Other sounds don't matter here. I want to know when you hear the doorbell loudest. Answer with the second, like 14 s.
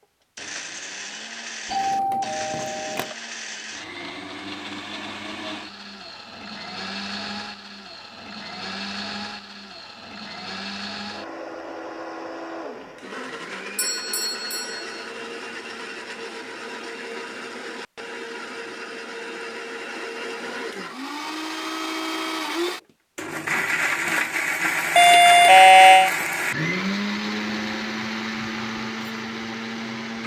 26 s.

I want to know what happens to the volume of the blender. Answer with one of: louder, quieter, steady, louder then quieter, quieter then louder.
louder.